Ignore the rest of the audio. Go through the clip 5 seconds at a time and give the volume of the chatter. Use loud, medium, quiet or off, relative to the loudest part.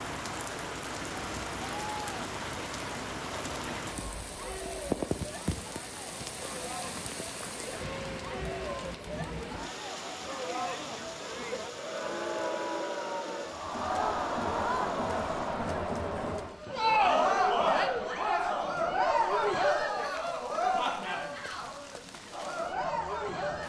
quiet, quiet, medium, loud, medium.